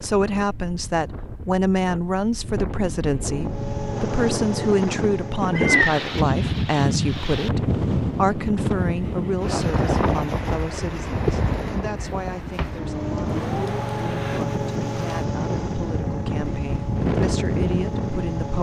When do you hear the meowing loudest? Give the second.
6 s.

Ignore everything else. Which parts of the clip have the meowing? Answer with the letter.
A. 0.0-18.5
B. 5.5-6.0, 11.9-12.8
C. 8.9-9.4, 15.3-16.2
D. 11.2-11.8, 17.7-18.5
B.